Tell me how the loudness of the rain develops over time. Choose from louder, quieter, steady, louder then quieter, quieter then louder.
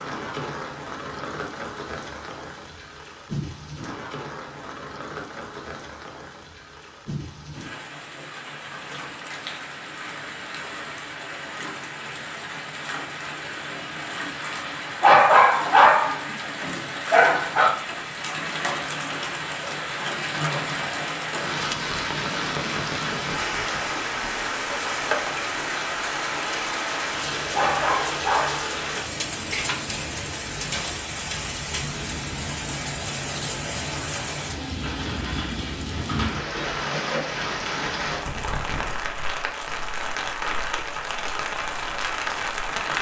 louder.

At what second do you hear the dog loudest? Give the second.
15 s.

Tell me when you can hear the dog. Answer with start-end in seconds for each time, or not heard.
15.0-17.8, 27.5-29.4.